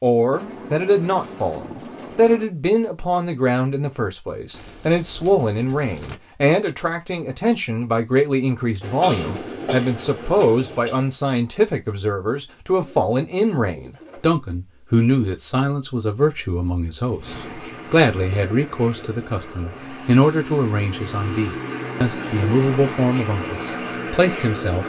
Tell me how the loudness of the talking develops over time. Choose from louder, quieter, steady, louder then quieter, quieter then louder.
steady.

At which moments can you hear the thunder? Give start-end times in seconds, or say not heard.
not heard.